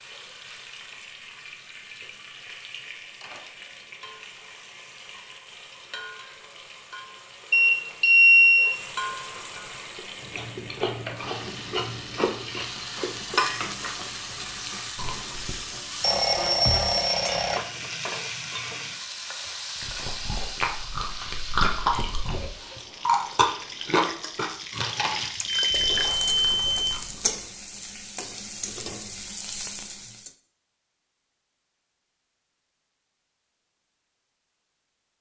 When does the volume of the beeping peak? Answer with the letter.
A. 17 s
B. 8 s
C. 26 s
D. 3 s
B.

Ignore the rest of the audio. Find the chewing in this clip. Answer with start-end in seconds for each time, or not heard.
9.9-15.7, 19.8-27.4.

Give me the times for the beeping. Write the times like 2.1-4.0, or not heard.
7.5-8.8, 16.0-17.6, 25.4-26.9.